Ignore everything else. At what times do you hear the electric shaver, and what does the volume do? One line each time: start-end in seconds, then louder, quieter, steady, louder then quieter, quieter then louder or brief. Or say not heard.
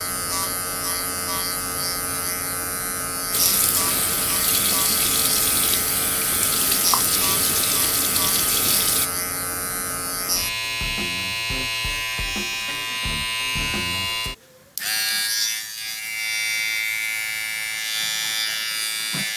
0.0-19.3 steady.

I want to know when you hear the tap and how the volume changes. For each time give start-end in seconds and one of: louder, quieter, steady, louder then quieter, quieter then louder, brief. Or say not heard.
3.3-9.1 steady.